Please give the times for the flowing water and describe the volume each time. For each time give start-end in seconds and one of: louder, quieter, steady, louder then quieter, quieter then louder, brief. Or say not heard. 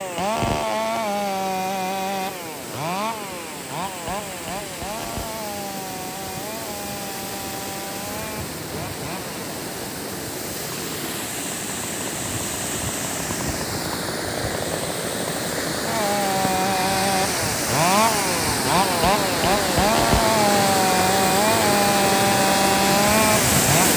0.0-23.9 louder.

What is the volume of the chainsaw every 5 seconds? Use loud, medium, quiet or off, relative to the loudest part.
medium, quiet, quiet, loud, loud.